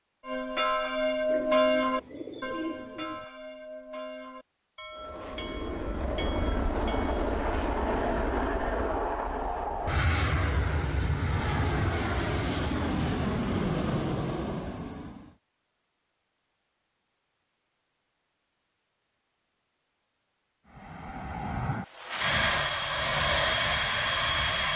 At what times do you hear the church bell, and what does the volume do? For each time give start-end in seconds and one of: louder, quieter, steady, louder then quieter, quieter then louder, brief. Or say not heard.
0.2-7.3 quieter.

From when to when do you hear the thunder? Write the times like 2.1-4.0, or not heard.
not heard.